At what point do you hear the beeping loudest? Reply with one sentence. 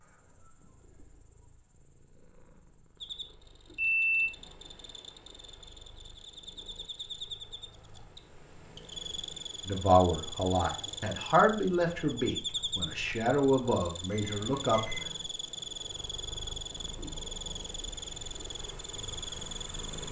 The loudest moment of the beeping is at 4 seconds.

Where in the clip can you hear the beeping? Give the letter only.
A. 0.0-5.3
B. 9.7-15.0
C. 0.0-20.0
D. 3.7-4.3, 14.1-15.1
D.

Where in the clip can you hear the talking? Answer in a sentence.
The talking can be heard from 9.7 to 15.0 s.